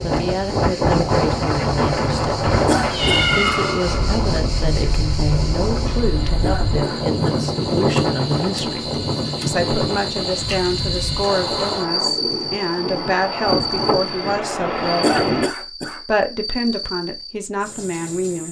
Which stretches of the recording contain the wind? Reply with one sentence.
The wind can be heard from 0.0 to 15.5 s.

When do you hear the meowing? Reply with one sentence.
The meowing can be heard from 2.9 to 4.2 s.